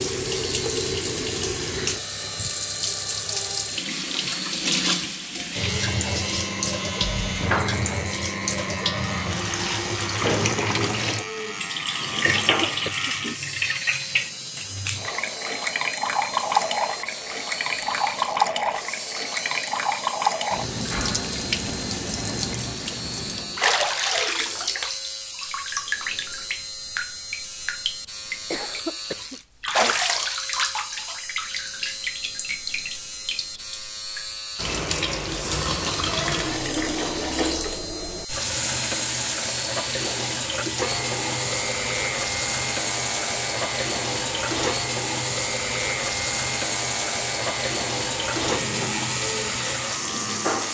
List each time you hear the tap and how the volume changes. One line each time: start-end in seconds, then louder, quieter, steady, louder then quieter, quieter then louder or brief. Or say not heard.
0.0-50.6 steady.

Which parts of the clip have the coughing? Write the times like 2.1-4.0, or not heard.
12.2-13.2, 28.5-29.9.